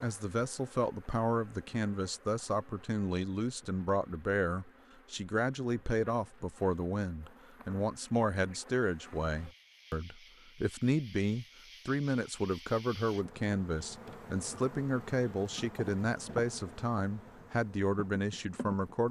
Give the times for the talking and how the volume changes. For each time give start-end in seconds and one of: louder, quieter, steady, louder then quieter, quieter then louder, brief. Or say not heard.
0.0-19.0 steady.